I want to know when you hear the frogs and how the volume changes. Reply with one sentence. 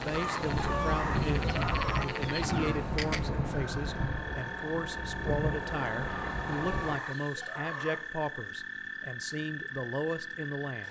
You can hear the frogs from 0.0 to 10.8 s, at a steady volume.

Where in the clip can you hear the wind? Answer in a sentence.
You can hear the wind from 0.0 to 7.0 s.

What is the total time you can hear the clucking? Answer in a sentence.
You can hear the clucking for 5 seconds altogether.